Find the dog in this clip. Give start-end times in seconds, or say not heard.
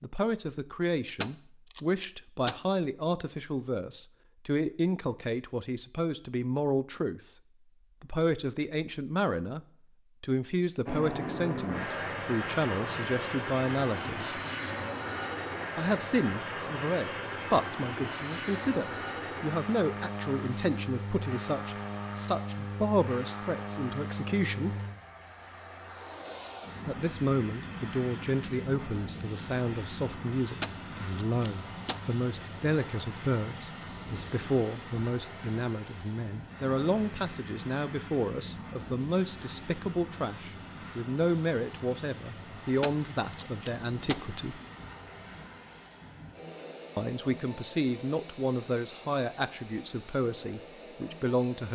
not heard.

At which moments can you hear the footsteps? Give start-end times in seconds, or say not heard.
not heard.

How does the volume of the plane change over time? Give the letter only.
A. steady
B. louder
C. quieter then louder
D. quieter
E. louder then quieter
D.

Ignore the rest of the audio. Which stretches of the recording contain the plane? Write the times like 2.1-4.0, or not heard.
10.8-51.6.